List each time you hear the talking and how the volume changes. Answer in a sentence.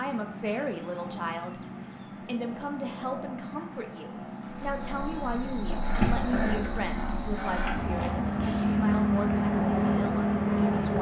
You can hear the talking from 0.0 to 10.9 s, at a steady volume.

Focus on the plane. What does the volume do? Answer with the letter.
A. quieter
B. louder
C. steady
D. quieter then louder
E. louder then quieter
B.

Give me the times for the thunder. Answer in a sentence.
You can't hear the thunder here.